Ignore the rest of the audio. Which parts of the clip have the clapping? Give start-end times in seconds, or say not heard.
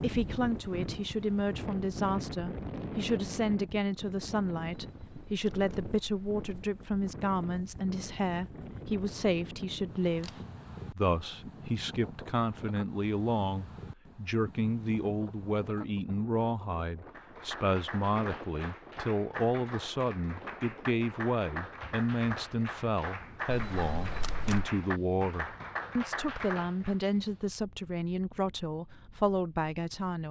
17.1-27.0.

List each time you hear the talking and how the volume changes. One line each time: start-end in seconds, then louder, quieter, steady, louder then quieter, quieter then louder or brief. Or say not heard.
0.0-30.2 steady.